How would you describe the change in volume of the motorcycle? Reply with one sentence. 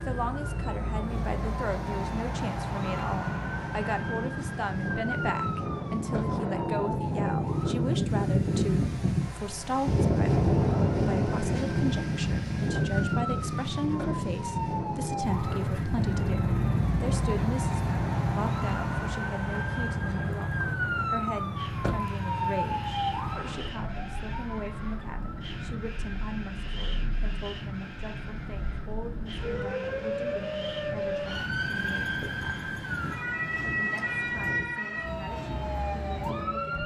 The volume of the motorcycle goes down.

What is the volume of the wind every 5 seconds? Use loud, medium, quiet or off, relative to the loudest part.
medium, loud, loud, medium, quiet, quiet, quiet, quiet.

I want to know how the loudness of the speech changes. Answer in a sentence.
The volume of the speech goes down.